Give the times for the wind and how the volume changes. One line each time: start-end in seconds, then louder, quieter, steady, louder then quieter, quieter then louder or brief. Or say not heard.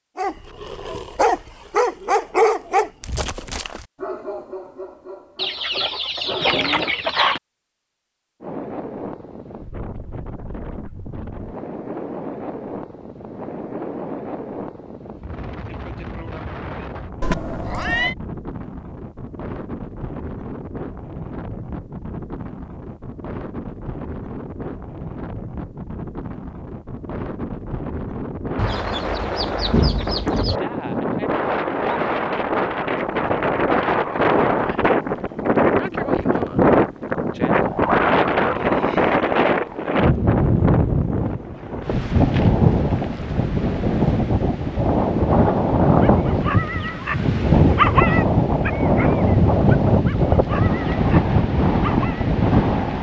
8.4-52.9 louder.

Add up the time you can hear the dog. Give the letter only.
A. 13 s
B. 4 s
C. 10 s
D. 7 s
A.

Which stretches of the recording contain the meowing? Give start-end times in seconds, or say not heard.
17.2-18.1.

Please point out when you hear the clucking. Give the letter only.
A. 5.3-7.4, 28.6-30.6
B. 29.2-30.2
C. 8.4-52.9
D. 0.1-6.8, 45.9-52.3
A.